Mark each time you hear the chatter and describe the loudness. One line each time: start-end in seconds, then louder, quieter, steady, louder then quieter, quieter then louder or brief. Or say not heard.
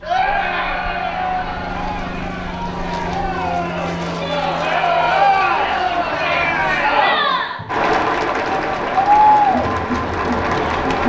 0.0-11.0 louder.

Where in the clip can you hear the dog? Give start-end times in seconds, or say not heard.
not heard.